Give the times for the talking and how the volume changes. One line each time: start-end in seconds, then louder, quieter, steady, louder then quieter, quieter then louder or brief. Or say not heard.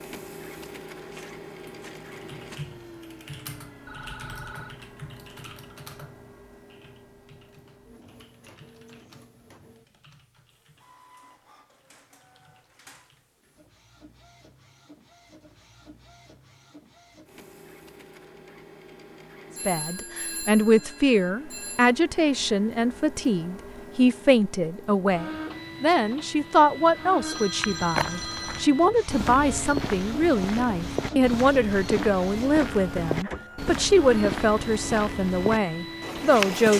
19.6-36.7 steady.